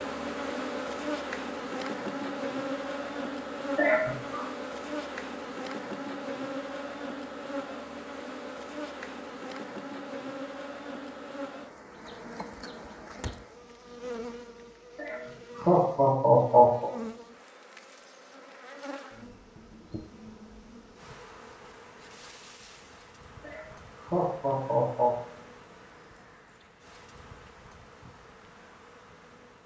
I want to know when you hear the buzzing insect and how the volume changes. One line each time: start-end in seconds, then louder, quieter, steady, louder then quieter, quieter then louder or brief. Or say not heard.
0.0-29.6 quieter.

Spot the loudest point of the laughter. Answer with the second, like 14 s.
16 s.